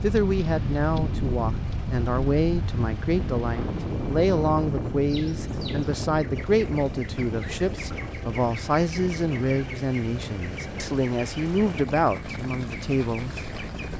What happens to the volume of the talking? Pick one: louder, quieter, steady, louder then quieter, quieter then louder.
steady.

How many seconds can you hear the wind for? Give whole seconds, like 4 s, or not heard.
14 s.